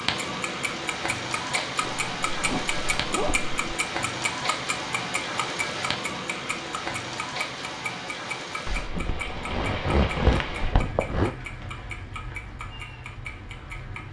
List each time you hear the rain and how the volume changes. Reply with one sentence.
The rain can be heard from 0.0 to 14.0 s, getting quieter.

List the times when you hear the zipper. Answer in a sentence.
The zipper can be heard from 1.8 to 3.5 s and from 8.7 to 11.3 s.